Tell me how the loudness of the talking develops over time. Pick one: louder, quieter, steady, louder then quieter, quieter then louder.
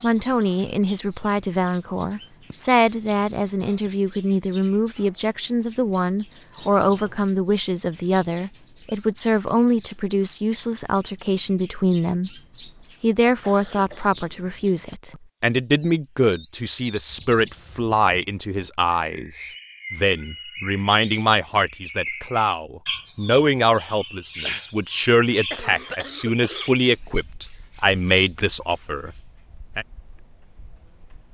steady.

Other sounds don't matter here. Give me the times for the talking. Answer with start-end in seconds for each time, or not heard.
0.0-12.3, 13.0-29.9.